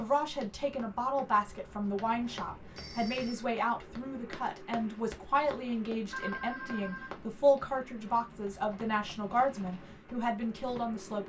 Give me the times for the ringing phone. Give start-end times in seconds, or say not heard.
2.8-3.5, 6.1-7.1.